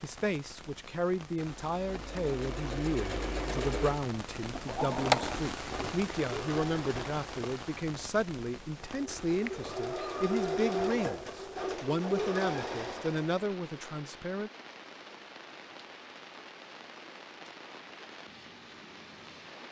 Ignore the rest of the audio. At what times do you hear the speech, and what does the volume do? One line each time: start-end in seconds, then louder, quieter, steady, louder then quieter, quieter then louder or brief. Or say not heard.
0.0-14.5 steady.